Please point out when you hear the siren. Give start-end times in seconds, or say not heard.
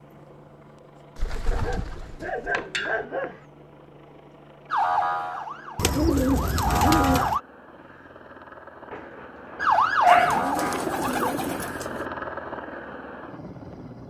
4.7-7.4, 9.6-11.3.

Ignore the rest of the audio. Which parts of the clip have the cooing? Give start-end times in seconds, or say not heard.
1.1-3.0, 5.8-7.4, 10.1-12.1.